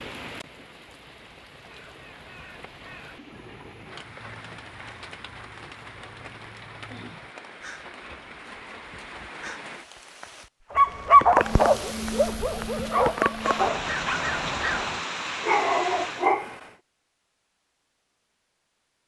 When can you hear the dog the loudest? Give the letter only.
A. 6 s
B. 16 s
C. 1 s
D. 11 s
D.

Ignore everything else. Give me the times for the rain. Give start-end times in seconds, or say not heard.
0.0-16.3.